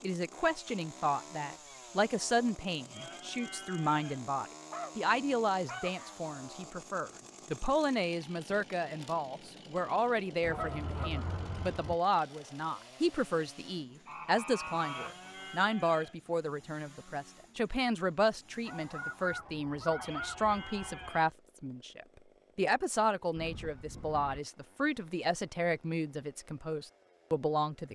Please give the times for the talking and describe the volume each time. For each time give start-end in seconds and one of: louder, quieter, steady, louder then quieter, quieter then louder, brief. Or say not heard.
0.0-27.9 steady.